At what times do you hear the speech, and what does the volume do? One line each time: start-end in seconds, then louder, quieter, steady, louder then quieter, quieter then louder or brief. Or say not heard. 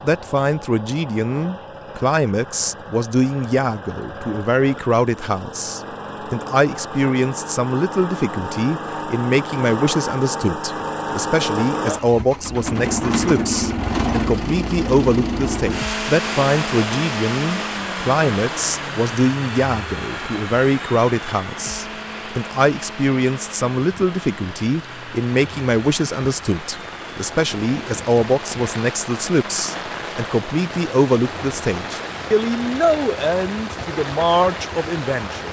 0.0-35.4 steady.